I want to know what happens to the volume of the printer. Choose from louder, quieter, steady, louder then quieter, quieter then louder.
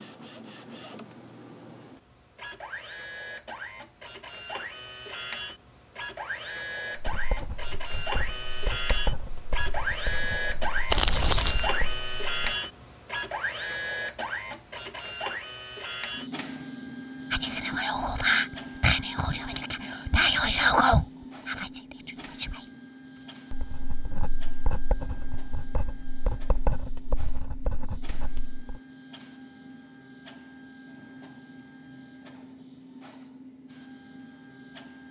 louder then quieter.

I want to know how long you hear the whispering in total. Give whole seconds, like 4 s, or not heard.
5 s.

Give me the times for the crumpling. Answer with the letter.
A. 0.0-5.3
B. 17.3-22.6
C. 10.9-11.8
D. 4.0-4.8
C.